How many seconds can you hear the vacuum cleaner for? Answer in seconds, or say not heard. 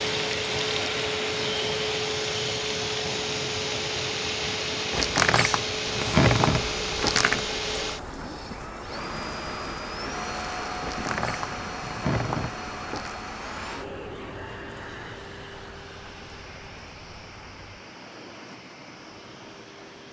20 s.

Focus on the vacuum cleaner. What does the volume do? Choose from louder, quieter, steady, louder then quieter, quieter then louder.
quieter.